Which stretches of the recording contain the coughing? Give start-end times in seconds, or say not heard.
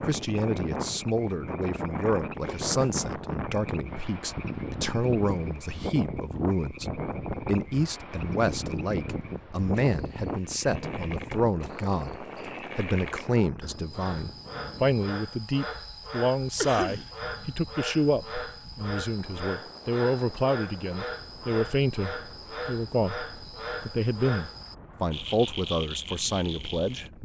2.5-3.1, 16.6-17.1.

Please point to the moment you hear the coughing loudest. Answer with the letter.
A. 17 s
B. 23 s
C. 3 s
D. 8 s
A.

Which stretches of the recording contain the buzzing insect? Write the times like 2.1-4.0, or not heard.
not heard.